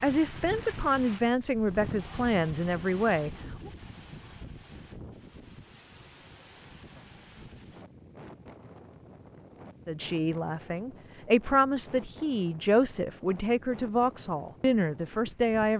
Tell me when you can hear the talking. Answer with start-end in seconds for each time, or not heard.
0.0-3.7, 9.8-15.7.